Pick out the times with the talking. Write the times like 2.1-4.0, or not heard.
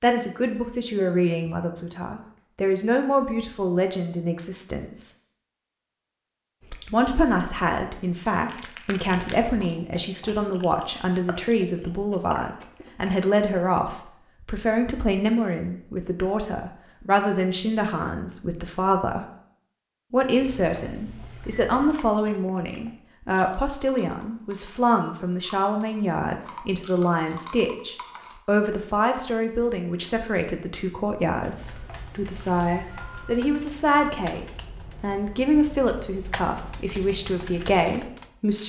0.0-5.1, 6.9-19.2, 20.1-38.6.